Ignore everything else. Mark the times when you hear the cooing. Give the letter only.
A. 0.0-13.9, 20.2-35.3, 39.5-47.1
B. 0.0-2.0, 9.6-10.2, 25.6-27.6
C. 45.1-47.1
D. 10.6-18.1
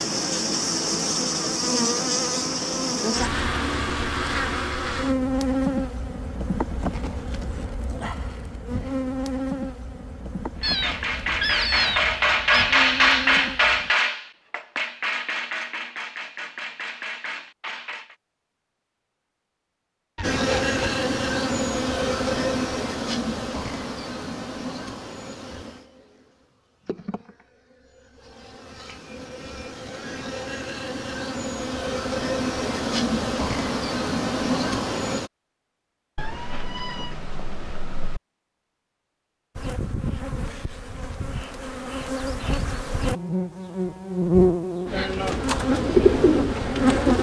C.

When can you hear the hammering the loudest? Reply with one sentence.
The loudest moment of the hammering is at 13 seconds.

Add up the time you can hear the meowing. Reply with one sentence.
You can hear the meowing for 5 seconds altogether.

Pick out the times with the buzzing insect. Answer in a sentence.
The buzzing insect can be heard from 0.0 to 13.9 s, from 20.2 to 35.3 s and from 39.5 to 47.1 s.